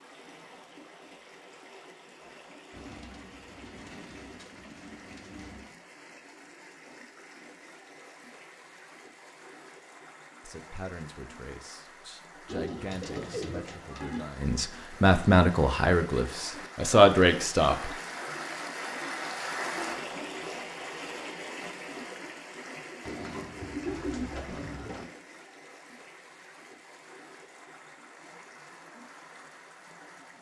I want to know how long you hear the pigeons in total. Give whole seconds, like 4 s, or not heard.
7 s.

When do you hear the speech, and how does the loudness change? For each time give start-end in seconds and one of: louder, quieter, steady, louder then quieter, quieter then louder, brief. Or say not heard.
10.4-17.9 louder.